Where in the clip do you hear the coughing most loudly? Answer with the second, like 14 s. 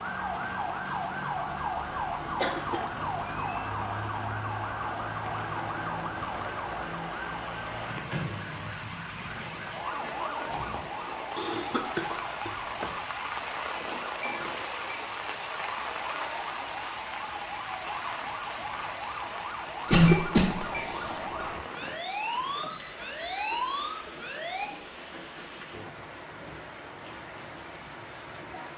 20 s.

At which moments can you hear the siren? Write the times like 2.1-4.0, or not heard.
0.0-24.7.